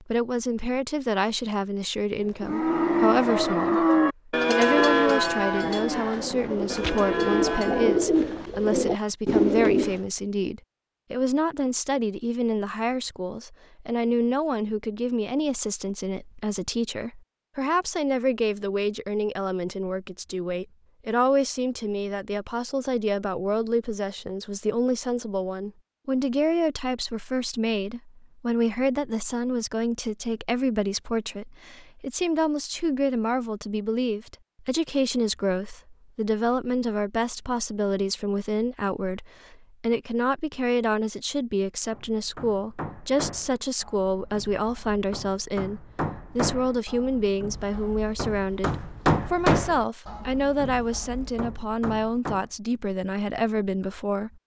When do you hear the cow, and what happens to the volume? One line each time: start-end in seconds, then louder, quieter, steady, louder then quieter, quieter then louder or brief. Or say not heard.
2.4-8.1 quieter.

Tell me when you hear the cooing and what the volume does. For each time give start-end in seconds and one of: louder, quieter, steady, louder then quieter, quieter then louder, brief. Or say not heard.
4.7-10.0 louder.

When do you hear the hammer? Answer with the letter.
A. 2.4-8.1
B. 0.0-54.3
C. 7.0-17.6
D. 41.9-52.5
D.